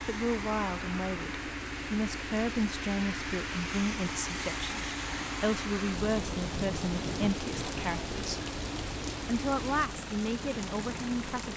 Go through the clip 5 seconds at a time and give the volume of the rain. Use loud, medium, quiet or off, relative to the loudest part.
loud, loud, medium.